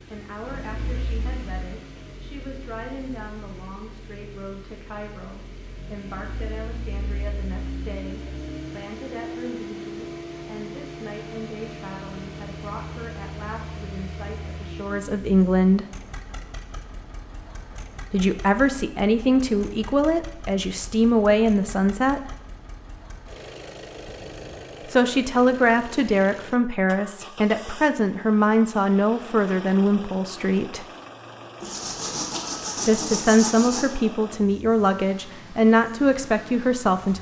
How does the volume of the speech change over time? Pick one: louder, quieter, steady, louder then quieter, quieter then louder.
louder.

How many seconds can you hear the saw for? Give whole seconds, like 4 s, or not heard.
2 s.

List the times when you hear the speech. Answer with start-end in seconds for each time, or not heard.
0.1-15.8, 18.1-22.4, 24.9-30.9, 32.9-37.1.